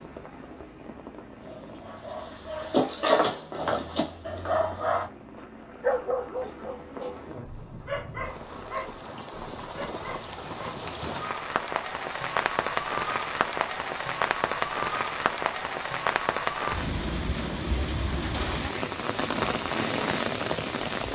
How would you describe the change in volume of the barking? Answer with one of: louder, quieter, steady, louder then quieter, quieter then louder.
quieter.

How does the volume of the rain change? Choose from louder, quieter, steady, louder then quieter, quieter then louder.
louder.